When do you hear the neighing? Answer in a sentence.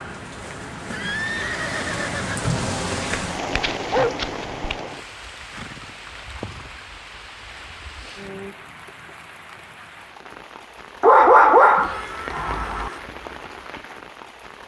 You can hear the neighing from 0.8 to 2.5 s, from 5.5 to 6.8 s and from 11.8 to 13.0 s.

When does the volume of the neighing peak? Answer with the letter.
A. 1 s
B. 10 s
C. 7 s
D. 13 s
A.